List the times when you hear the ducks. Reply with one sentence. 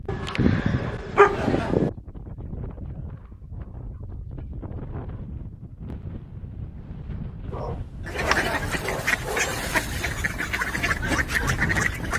The ducks can be heard from 8.1 to 12.1 s.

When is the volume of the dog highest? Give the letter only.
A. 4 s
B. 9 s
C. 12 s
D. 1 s
D.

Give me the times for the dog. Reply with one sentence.
You can hear the dog from 0.1 to 1.9 s and from 7.5 to 9.5 s.